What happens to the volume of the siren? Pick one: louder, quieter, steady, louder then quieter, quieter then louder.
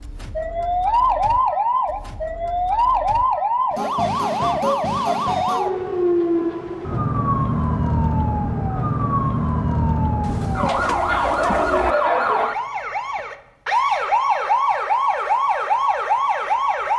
steady.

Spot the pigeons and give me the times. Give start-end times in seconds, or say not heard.
10.2-11.9.